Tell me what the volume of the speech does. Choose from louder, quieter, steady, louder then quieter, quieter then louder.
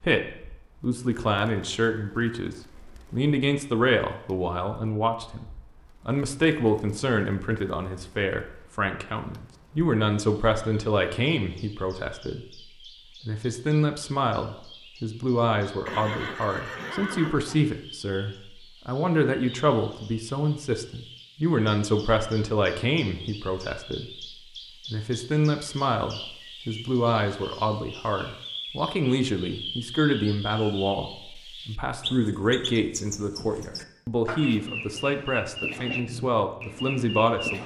steady.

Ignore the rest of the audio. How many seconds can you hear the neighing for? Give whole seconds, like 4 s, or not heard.
2 s.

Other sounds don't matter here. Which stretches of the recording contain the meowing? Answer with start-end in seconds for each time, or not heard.
not heard.